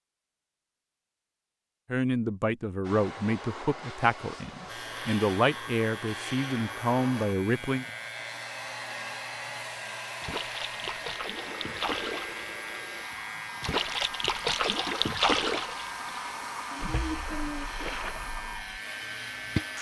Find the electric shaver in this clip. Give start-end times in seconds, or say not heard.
4.7-19.7.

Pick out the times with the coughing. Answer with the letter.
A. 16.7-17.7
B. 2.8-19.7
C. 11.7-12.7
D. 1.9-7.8
A.